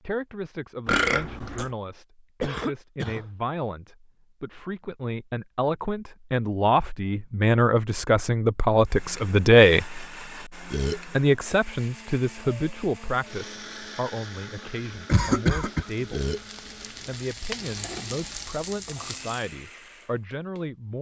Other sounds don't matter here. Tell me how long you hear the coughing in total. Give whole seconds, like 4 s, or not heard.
2 s.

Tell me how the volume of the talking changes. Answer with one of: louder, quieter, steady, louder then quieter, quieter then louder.
louder then quieter.